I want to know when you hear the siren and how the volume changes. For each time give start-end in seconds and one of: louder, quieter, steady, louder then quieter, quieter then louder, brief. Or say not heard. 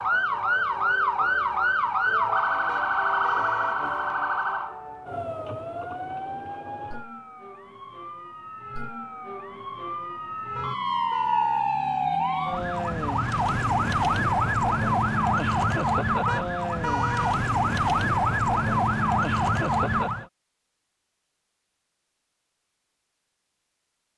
0.0-20.2 quieter then louder.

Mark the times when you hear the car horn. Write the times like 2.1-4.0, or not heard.
2.6-3.8, 10.6-11.7, 16.2-17.4.